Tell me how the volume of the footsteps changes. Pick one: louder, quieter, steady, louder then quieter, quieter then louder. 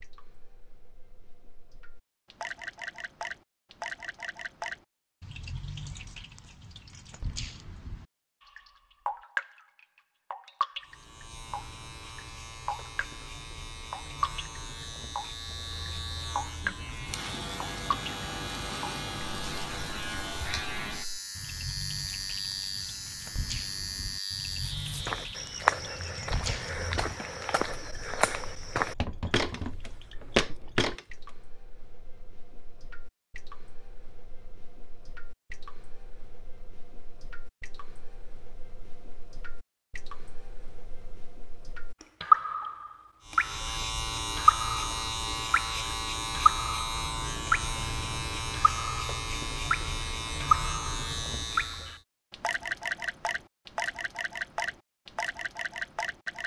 quieter then louder.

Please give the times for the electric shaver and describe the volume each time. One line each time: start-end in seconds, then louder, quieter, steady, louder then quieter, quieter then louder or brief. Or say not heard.
10.8-25.6 louder
43.2-52.0 steady.